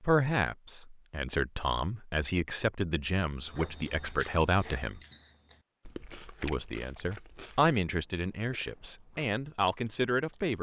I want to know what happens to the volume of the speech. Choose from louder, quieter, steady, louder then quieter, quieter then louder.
steady.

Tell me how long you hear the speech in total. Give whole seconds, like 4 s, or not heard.
9 s.